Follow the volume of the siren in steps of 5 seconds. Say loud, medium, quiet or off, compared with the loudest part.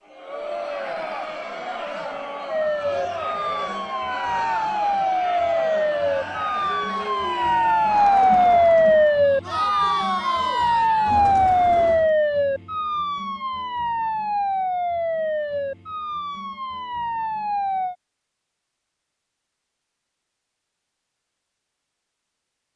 medium, loud, loud, medium, off.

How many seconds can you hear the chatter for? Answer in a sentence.
You can hear the chatter for 12 seconds altogether.